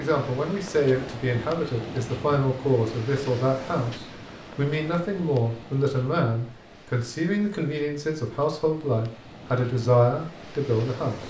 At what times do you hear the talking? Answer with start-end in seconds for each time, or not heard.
0.0-11.2.